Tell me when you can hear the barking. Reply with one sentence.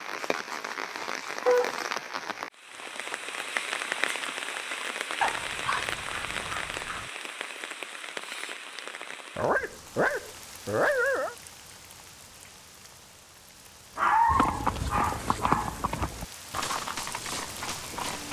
You can hear the barking from 0.2 to 1.9 s, from 5.2 to 7.1 s, from 9.3 to 11.3 s and from 13.9 to 16.1 s.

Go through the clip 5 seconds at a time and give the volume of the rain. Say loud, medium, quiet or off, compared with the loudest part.
loud, loud, quiet, medium.